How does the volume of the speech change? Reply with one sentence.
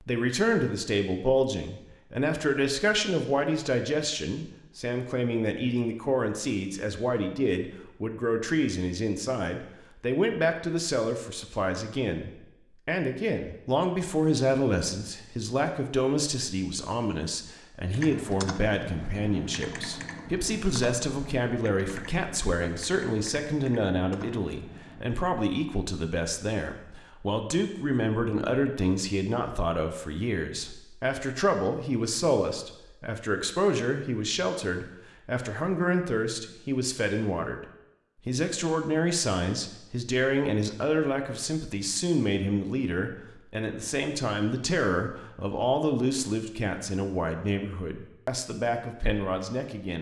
The volume of the speech stays about the same.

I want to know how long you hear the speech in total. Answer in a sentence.
The speech can be heard for 49 seconds in total.